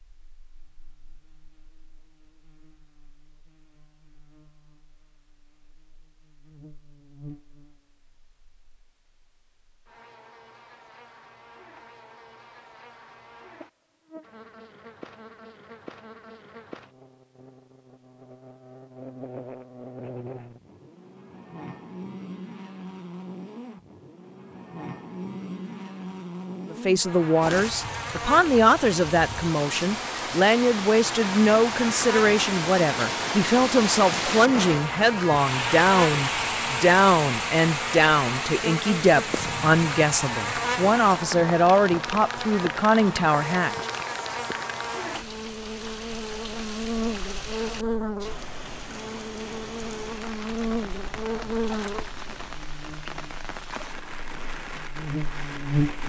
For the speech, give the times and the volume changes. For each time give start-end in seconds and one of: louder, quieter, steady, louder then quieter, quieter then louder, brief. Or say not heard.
26.7-43.9 steady.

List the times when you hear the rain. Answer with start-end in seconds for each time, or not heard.
27.4-56.0.